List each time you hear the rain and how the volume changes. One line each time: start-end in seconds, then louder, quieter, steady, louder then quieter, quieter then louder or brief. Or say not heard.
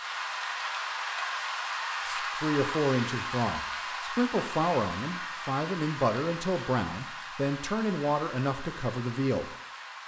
0.0-10.0 quieter.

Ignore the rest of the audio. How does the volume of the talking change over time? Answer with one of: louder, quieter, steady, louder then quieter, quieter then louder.
steady.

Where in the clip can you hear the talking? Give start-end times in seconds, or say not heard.
2.0-9.5.